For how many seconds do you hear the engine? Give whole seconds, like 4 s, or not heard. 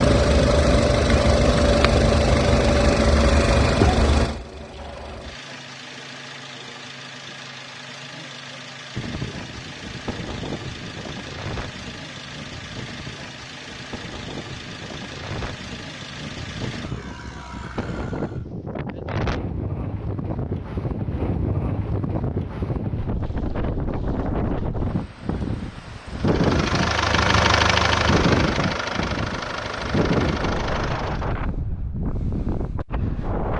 24 s.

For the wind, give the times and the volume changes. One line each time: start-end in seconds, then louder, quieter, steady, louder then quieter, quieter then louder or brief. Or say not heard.
8.9-33.5 louder.